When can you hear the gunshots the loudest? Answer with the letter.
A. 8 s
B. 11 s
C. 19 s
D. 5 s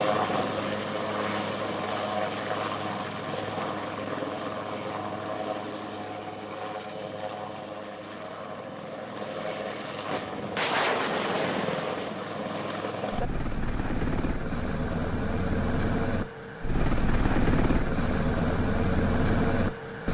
B.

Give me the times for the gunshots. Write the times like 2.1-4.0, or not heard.
10.1-12.1.